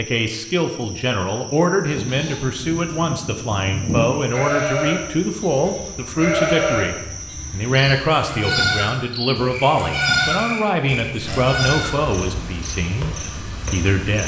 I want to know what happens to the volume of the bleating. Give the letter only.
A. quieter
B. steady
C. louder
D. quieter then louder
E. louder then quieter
C.